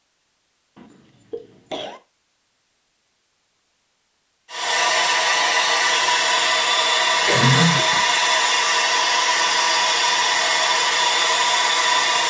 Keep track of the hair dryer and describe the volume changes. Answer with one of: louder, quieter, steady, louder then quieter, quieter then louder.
steady.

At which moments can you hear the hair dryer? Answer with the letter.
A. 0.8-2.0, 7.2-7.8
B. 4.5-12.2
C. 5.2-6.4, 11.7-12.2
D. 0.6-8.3
B.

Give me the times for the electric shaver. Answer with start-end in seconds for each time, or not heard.
not heard.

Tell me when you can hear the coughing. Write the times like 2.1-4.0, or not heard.
0.8-2.0, 7.2-7.8.